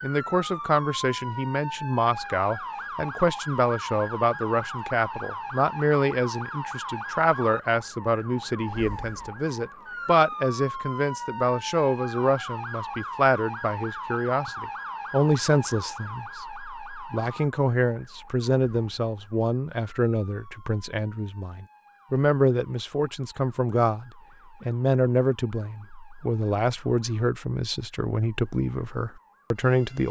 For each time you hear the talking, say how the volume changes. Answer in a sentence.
You can hear the talking from 0.0 to 30.0 s, at a steady volume.